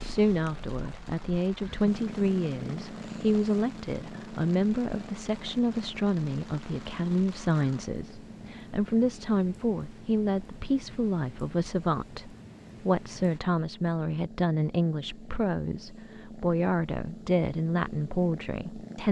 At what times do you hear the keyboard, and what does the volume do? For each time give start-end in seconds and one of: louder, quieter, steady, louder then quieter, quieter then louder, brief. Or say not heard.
not heard.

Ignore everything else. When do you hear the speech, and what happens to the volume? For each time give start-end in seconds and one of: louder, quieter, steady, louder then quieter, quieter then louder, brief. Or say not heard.
0.0-19.0 steady.